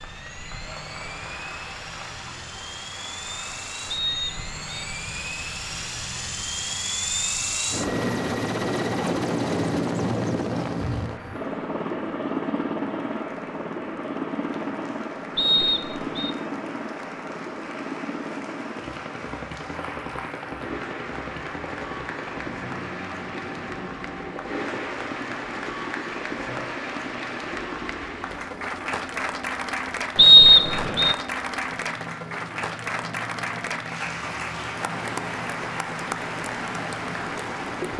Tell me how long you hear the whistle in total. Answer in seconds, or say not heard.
3 s.